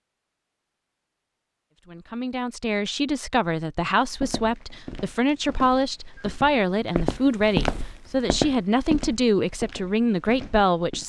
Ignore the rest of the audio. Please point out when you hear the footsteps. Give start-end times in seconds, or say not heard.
4.1-11.0.